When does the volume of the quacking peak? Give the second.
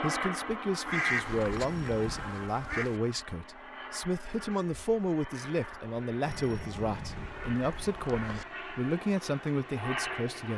1 s.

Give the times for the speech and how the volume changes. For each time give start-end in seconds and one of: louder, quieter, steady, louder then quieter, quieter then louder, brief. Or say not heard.
0.0-10.5 steady.